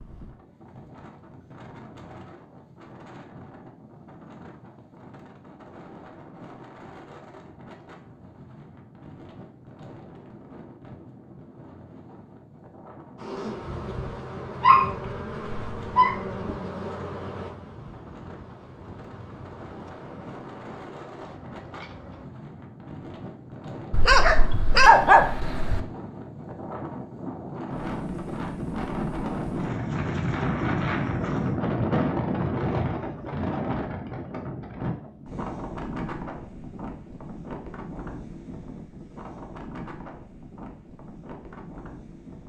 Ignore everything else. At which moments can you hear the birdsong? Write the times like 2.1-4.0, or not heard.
not heard.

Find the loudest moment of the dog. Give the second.
25 s.